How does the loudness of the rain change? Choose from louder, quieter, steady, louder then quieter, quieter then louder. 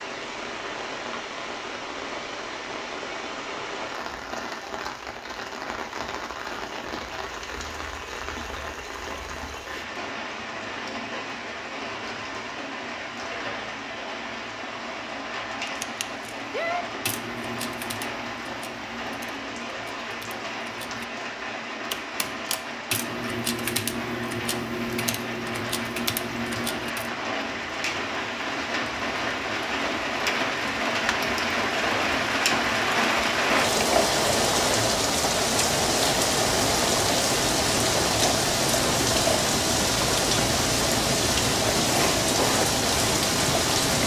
louder.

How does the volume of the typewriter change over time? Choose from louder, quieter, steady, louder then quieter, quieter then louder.
quieter then louder.